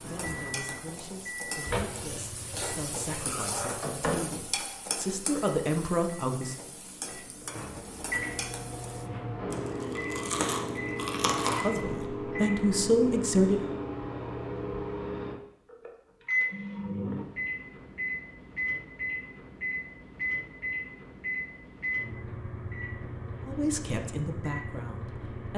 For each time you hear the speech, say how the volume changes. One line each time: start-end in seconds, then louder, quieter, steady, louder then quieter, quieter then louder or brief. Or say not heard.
0.0-6.5 louder
11.4-13.7 brief
23.4-25.5 brief.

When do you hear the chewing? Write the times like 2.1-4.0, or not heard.
9.5-12.1.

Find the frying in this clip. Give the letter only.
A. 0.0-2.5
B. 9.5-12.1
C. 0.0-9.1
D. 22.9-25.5
C.